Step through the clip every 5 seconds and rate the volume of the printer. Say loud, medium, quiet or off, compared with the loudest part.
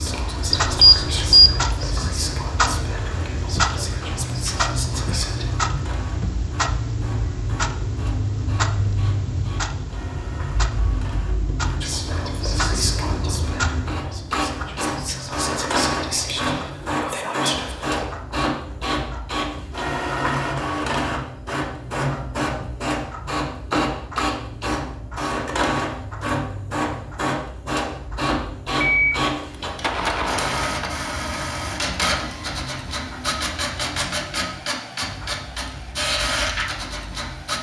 quiet, quiet, medium, loud, loud, loud, loud, loud.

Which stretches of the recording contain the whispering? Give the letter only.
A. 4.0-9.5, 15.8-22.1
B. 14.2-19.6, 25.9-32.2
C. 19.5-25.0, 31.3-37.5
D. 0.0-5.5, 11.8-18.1
D.